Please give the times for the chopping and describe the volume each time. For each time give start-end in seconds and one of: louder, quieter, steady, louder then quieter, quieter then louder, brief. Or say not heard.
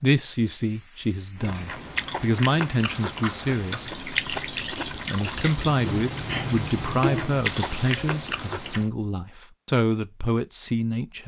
not heard.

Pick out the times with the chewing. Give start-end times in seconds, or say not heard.
1.4-8.9.